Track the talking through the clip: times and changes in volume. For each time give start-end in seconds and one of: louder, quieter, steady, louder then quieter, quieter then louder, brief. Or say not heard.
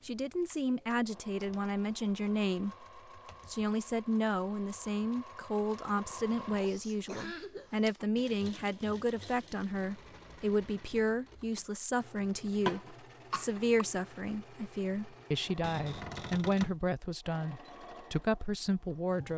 0.1-19.3 steady.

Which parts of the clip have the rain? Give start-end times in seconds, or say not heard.
not heard.